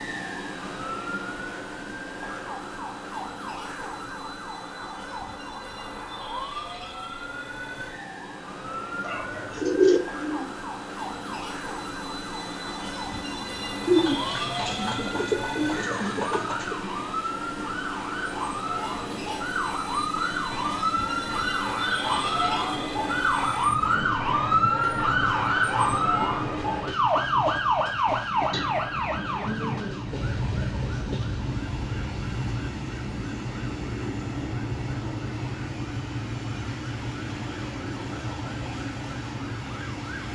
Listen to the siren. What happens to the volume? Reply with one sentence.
The volume of the siren goes up, then down.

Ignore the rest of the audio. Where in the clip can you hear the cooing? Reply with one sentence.
You can hear the cooing from 9.1 to 10.5 s, from 13.8 to 16.8 s and from 28.5 to 30.1 s.